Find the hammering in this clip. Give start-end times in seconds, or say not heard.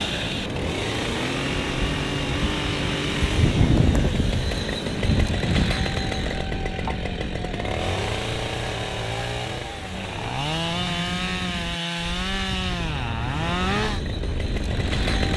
not heard.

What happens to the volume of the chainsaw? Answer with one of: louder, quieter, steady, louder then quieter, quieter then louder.
steady.